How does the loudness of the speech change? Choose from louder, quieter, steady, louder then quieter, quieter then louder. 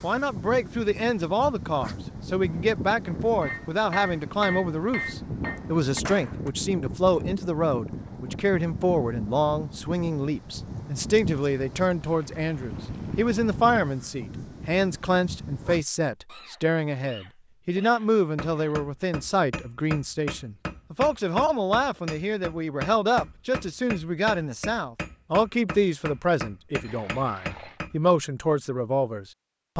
steady.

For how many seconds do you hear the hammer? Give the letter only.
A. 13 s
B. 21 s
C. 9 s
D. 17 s
A.